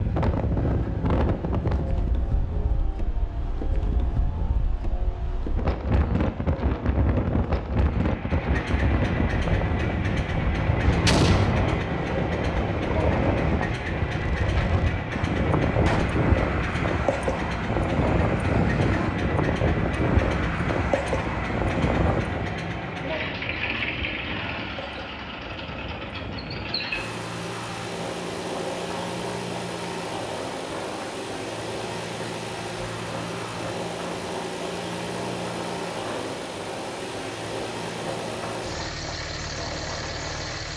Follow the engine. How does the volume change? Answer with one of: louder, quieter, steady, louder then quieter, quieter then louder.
louder.